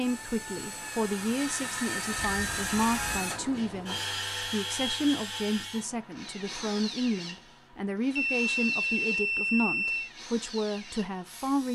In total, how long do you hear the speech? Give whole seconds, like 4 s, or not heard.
12 s.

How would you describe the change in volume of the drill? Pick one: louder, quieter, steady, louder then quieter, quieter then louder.
quieter.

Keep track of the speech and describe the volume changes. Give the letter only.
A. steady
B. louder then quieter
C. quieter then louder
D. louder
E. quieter
A.